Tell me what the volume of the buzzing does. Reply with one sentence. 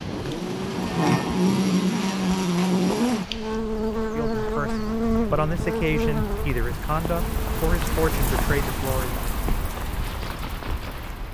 The loudness of the buzzing goes down.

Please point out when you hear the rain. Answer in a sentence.
You can hear the rain from 0.0 to 11.2 s.